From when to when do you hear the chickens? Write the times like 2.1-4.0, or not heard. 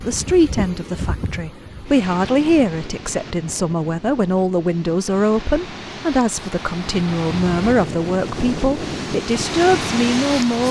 not heard.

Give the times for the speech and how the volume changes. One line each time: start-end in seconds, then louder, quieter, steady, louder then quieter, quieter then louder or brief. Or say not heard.
0.0-10.6 steady.